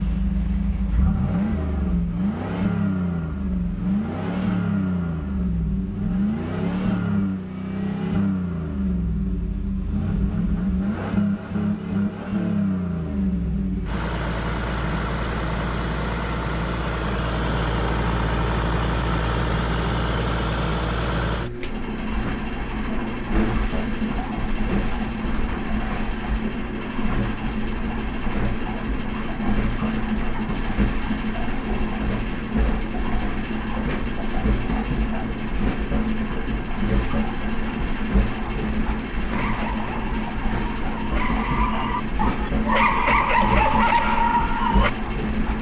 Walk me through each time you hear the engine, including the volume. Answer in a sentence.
The engine can be heard from 0.0 to 45.5 s, at a steady volume.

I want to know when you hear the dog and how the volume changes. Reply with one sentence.
The dog can be heard from 39.3 to 44.9 s, getting louder.